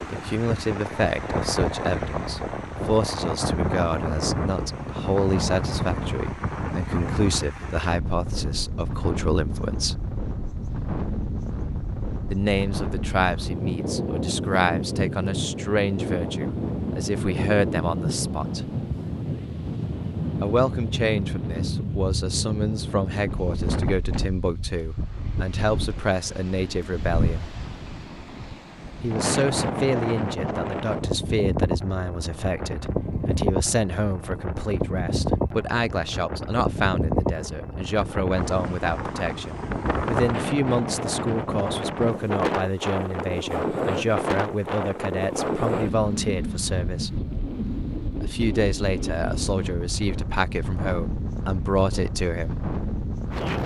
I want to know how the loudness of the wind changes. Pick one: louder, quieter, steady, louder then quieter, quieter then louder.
steady.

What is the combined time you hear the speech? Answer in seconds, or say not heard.
46 s.